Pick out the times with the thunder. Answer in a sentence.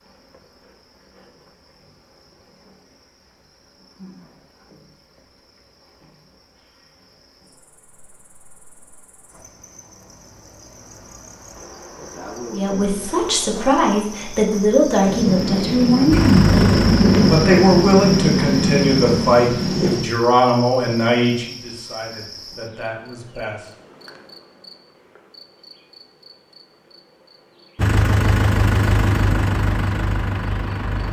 The thunder can be heard from 15.1 to 20.1 s.